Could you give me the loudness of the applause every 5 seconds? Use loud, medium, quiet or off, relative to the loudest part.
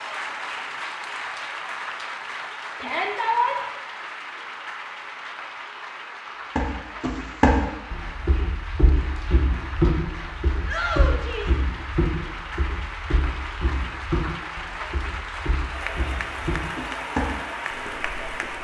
loud, medium, loud, loud.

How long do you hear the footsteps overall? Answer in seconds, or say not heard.
12 s.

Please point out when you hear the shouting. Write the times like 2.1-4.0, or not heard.
2.8-3.6, 10.7-11.6.